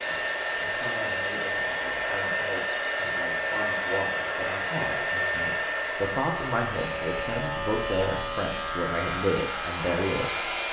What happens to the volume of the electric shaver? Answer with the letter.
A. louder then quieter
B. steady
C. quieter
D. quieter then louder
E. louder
E.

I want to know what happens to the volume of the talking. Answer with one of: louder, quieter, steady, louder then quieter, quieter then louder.
louder.